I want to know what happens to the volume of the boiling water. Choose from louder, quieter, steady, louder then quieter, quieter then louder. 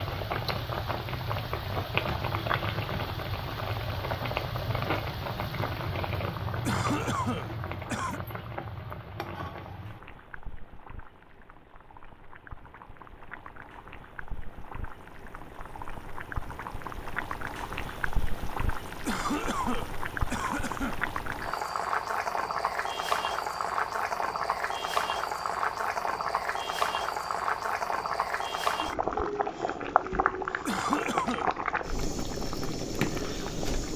quieter then louder.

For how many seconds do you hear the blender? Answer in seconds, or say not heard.
not heard.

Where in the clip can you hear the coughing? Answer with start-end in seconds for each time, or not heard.
6.7-8.2, 19.1-20.9, 30.6-31.5.